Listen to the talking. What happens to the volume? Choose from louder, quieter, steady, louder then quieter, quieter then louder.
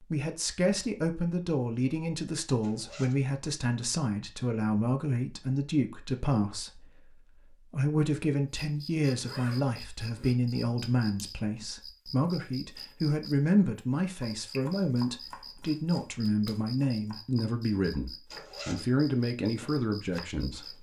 steady.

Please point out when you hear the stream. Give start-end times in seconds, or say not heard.
not heard.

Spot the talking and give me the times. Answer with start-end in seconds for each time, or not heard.
0.0-20.7.